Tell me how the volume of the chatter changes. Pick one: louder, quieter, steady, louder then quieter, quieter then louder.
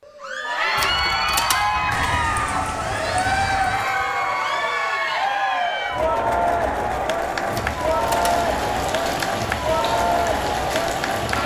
steady.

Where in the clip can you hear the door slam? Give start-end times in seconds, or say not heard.
not heard.